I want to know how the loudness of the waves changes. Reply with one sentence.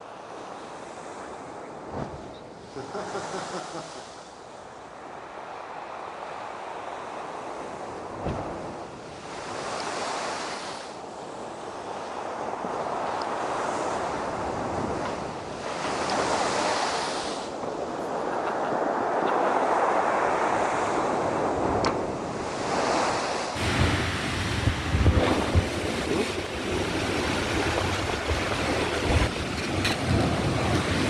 The loudness of the waves goes up.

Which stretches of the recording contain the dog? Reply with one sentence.
The dog can't be heard in this clip.